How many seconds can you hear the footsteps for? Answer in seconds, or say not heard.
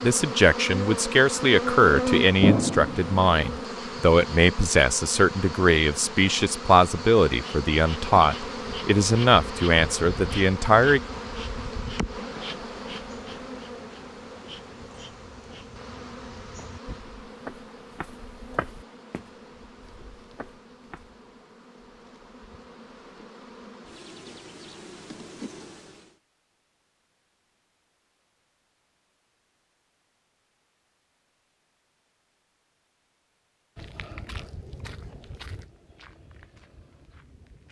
12 s.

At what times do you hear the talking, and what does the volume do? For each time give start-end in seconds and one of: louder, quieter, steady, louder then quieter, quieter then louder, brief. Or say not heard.
0.0-11.0 steady.